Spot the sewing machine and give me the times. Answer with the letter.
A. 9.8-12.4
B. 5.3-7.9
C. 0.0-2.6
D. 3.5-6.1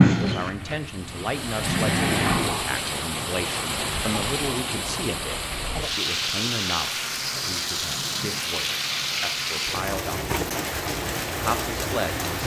C.